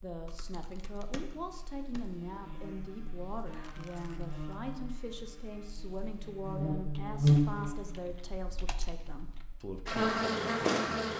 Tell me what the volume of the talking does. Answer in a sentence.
The volume of the talking stays about the same.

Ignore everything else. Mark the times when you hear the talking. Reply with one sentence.
You can hear the talking from 0.0 to 11.1 s.